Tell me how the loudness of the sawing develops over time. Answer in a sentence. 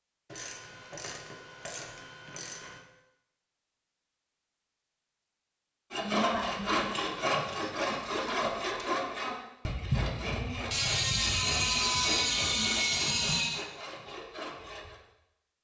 The volume of the sawing goes down.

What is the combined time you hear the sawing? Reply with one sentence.
The sawing can be heard for 9 seconds in total.